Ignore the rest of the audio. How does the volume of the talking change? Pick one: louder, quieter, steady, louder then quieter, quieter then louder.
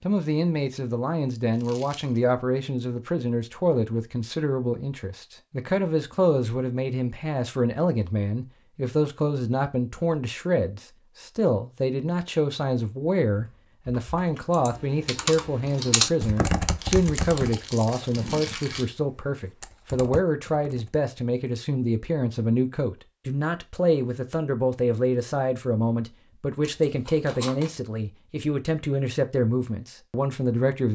steady.